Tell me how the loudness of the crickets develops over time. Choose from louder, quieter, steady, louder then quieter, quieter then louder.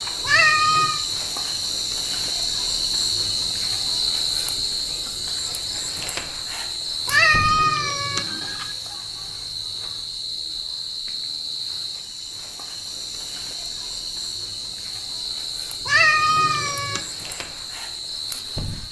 quieter.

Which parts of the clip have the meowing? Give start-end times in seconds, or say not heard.
0.2-1.0, 7.0-8.7, 15.8-17.0.